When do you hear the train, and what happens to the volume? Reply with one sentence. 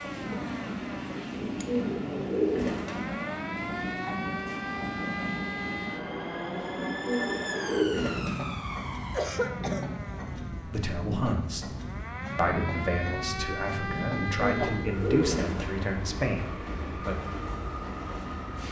The train can be heard from 0.0 to 18.6 s, at a steady volume.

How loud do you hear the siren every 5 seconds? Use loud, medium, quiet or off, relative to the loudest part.
loud, loud, loud, off.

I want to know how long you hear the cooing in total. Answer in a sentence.
The cooing can be heard for 5 seconds in total.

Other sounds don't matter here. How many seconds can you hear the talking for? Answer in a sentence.
The talking can be heard for 6 seconds in total.